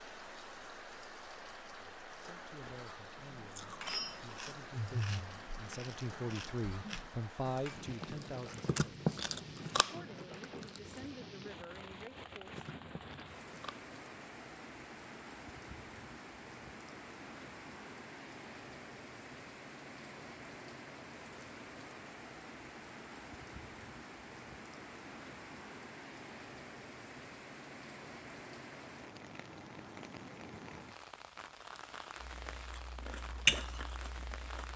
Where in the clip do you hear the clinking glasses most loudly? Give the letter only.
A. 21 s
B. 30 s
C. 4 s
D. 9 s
C.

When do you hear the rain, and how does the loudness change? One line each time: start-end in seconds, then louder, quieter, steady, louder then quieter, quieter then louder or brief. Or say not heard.
0.0-34.7 steady.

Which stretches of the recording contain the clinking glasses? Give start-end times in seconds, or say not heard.
2.6-4.2.